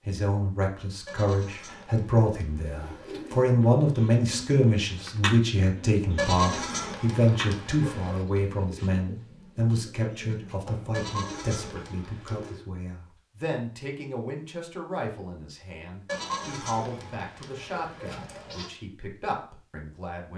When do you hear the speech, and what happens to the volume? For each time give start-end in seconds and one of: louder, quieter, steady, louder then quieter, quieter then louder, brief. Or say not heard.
0.0-20.3 quieter.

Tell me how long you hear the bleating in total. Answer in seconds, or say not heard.
9 s.